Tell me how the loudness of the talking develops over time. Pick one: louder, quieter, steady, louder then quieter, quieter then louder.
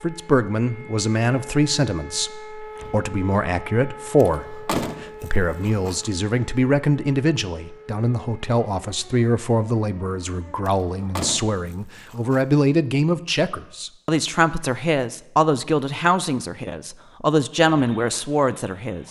steady.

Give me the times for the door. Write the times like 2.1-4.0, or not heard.
4.2-6.0, 10.8-12.4.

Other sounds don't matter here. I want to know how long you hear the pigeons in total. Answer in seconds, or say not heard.
not heard.